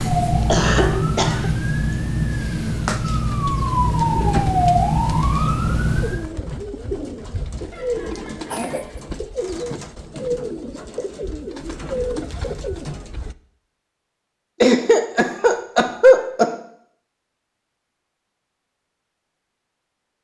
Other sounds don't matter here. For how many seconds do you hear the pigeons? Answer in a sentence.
You can hear the pigeons for 10 seconds altogether.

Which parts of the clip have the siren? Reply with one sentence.
The siren can be heard from 0.0 to 6.3 s.